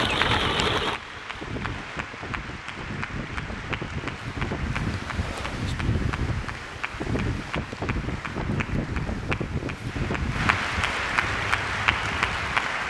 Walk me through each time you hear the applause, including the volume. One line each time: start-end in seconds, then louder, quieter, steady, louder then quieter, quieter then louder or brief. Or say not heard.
0.1-12.8 louder.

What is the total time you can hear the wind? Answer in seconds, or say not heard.
13 s.